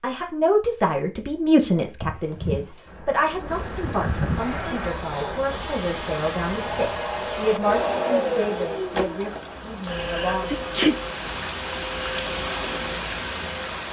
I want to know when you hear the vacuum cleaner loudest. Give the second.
8 s.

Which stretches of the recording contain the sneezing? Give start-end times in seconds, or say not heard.
2.0-4.5, 10.5-10.9.